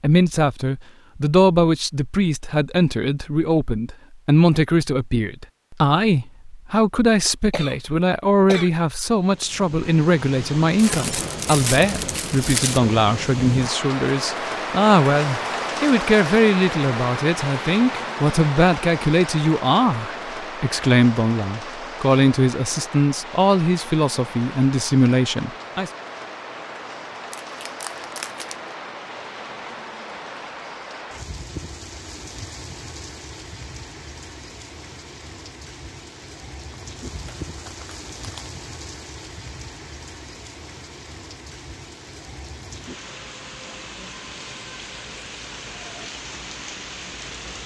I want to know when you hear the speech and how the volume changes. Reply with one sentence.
You can hear the speech from 0.0 to 25.9 s, at a steady volume.